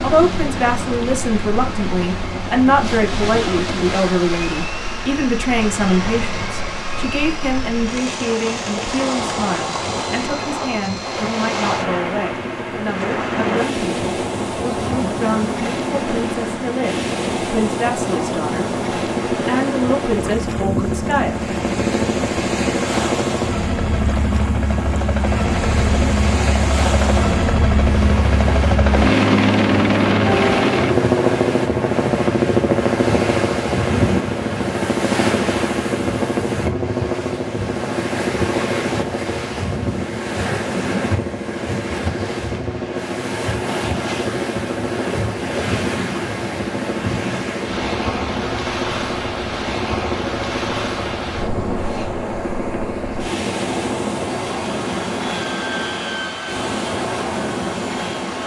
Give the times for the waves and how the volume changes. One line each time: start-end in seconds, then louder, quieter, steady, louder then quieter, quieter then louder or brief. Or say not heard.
0.0-58.4 steady.